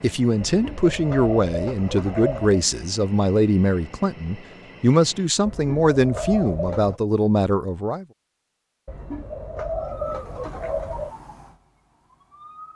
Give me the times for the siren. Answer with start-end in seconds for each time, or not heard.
9.8-12.7.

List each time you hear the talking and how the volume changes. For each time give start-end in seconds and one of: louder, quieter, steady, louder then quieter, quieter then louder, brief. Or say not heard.
0.0-8.1 steady.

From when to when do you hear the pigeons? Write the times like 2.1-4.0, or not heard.
0.4-2.6, 5.5-7.0, 8.8-11.2.